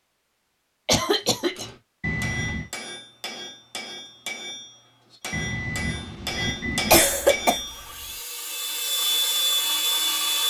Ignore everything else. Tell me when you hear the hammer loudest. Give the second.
7 s.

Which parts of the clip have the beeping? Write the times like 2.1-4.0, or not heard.
2.0-2.7, 5.3-6.9.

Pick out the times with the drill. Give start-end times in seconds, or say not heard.
7.5-10.4.